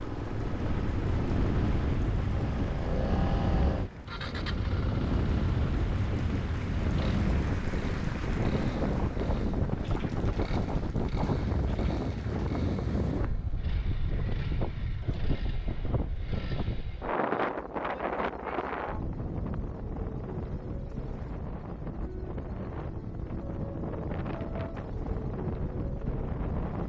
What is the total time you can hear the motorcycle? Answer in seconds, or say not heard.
27 s.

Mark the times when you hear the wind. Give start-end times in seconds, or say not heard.
0.2-26.8.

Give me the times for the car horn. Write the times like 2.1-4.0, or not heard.
not heard.